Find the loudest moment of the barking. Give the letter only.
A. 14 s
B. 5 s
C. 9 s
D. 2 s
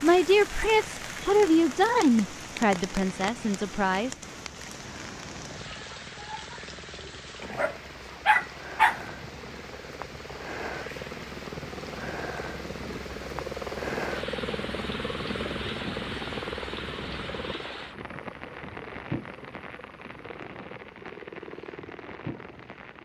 C.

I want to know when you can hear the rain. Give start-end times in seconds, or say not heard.
0.0-23.0.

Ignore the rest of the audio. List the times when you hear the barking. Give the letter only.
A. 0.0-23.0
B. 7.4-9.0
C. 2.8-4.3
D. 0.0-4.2
B.